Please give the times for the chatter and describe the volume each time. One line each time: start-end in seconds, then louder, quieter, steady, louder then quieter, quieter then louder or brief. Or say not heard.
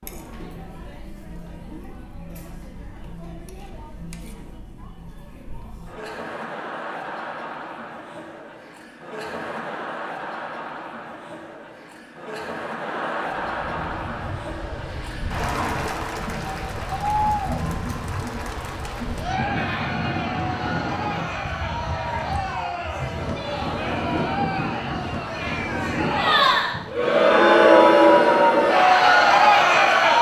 0.0-30.1 louder.